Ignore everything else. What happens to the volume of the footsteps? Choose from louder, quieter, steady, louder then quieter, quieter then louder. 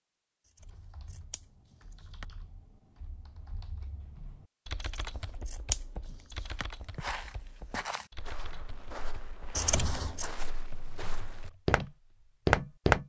quieter then louder.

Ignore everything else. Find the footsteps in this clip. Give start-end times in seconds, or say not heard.
6.5-13.0.